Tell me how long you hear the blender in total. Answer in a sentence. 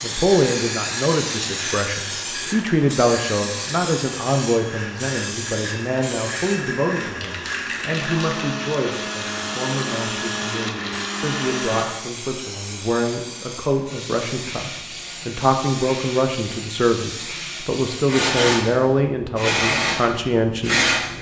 The blender can be heard for 12 seconds in total.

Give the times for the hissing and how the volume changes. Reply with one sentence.
The hissing can be heard from 0.0 to 21.1 s, getting quieter then louder.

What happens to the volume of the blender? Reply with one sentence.
The volume of the blender goes up.